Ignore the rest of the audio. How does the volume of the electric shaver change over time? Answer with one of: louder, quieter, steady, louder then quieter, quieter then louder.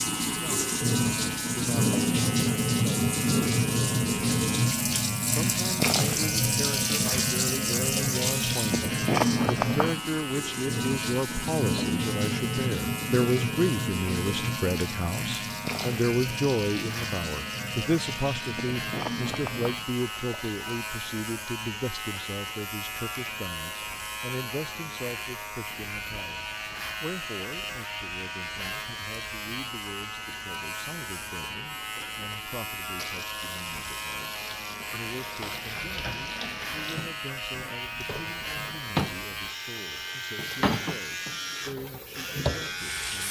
steady.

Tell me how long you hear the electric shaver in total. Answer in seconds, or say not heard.
43 s.